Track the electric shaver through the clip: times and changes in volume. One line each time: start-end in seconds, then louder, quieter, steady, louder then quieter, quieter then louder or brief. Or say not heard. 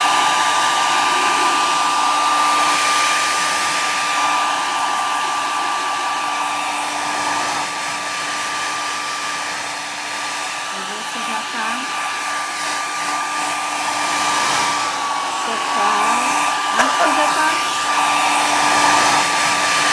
not heard.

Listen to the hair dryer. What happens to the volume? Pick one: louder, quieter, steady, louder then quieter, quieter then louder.
quieter then louder.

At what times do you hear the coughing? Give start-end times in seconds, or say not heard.
16.8-17.2.